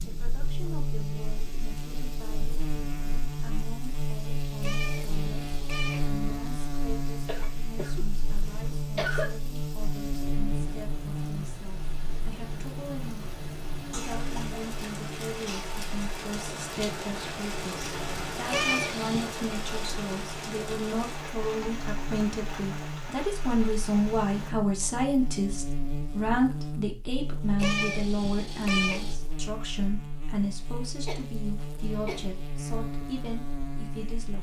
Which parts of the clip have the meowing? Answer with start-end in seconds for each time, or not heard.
4.6-6.1, 18.5-19.3, 27.6-29.1.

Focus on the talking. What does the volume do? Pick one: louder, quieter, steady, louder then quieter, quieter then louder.
louder then quieter.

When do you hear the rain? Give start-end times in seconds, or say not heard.
0.0-24.6.